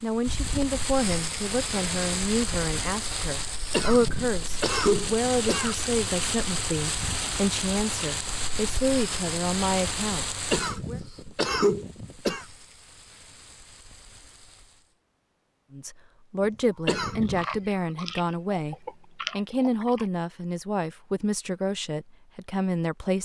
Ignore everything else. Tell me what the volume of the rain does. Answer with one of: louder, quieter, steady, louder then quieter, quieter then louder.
quieter.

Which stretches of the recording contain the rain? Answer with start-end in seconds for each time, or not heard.
0.0-14.9.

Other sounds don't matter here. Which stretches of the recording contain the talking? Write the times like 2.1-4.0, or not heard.
0.0-11.0, 15.7-23.2.